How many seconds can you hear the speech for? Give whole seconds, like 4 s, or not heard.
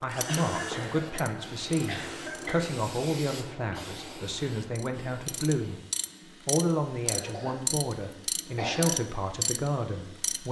10 s.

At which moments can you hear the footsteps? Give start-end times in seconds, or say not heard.
not heard.